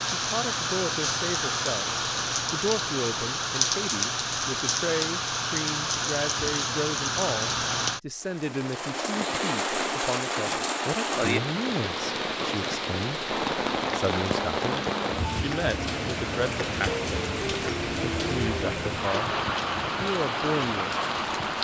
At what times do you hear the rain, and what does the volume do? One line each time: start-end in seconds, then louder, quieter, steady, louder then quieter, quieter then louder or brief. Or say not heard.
0.0-21.5 steady.